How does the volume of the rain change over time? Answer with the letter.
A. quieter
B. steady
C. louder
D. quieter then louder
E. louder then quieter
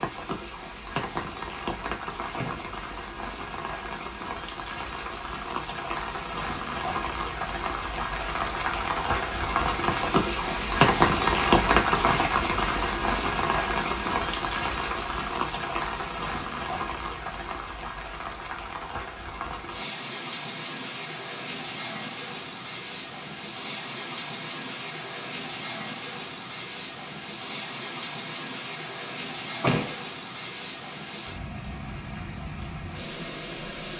E.